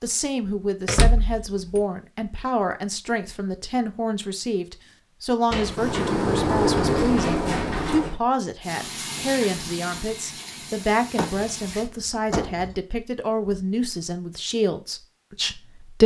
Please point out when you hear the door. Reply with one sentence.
You can hear the door from 0.8 to 1.8 s, from 5.5 to 8.2 s and from 11.2 to 12.8 s.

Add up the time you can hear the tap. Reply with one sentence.
The tap can be heard for 3 seconds in total.